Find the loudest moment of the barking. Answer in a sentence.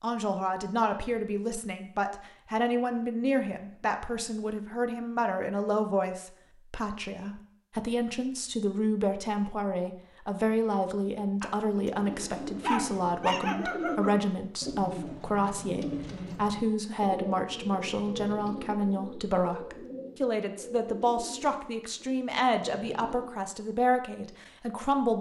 The loudest moment of the barking is at 13 seconds.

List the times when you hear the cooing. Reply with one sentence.
The cooing can be heard from 11.9 to 23.4 s.